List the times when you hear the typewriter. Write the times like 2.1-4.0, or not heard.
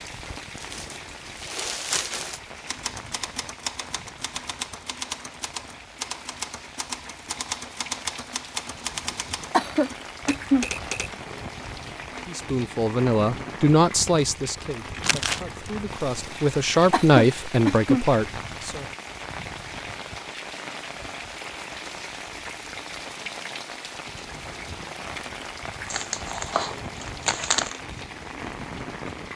2.5-11.2.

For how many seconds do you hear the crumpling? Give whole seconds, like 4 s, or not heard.
4 s.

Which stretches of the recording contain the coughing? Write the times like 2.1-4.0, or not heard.
9.5-10.7, 16.9-18.1.